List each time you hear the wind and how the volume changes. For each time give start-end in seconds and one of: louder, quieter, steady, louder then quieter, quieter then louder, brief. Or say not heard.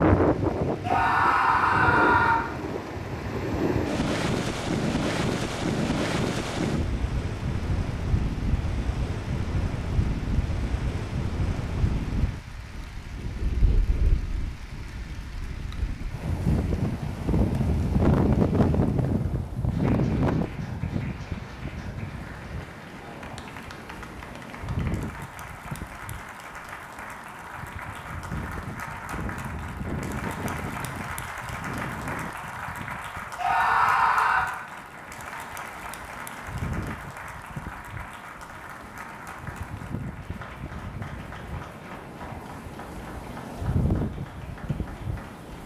0.0-45.6 quieter.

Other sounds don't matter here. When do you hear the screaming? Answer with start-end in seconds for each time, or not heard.
0.8-2.4, 33.4-34.5.